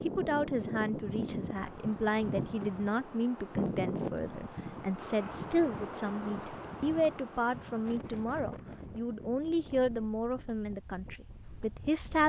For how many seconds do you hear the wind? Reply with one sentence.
You can hear the wind for 12 seconds altogether.